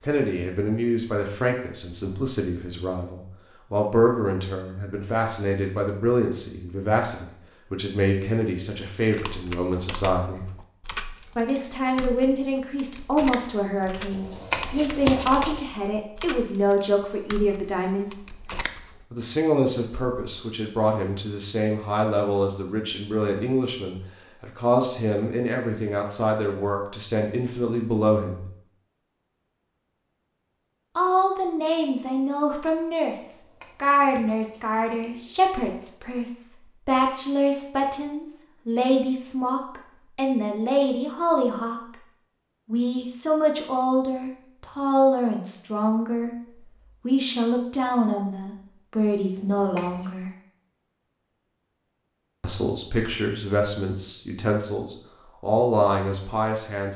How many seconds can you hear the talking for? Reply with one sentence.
You can hear the talking for 50 seconds altogether.